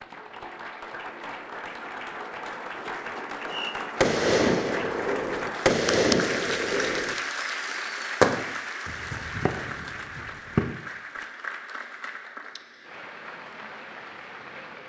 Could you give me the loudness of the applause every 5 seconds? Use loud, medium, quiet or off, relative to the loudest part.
loud, loud, medium.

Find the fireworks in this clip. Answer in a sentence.
You can hear the fireworks from 3.5 to 11.2 s.